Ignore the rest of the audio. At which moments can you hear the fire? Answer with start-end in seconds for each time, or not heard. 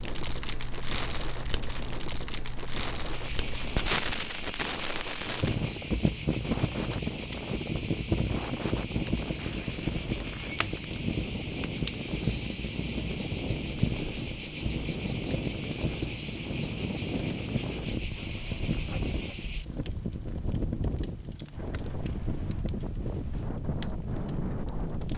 0.0-25.1.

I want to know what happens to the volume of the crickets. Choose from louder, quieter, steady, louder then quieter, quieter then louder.
steady.